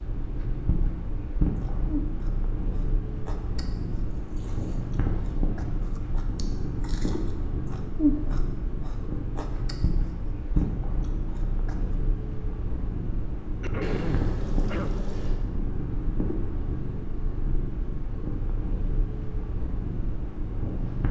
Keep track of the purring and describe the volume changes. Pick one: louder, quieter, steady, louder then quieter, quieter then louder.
steady.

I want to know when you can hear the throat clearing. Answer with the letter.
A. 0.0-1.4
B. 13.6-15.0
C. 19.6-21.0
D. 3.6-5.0
B.